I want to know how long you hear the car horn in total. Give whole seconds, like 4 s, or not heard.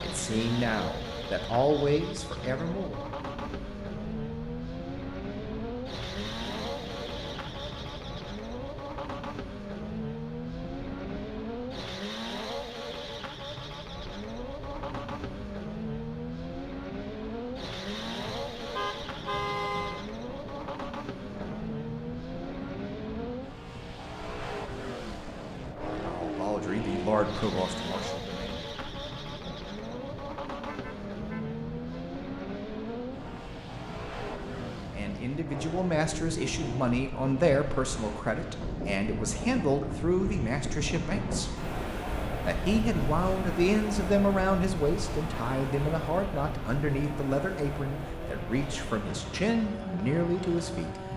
3 s.